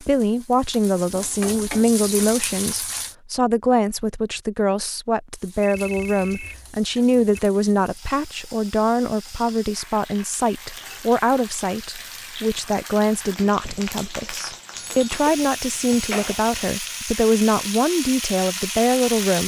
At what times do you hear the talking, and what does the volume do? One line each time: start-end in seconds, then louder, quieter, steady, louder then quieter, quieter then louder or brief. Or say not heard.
0.0-19.4 steady.